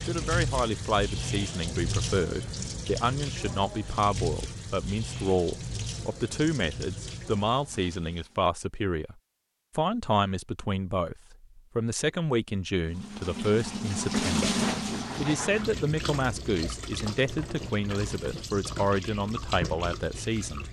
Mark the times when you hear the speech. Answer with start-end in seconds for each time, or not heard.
0.1-9.2, 9.8-14.6, 15.2-20.6.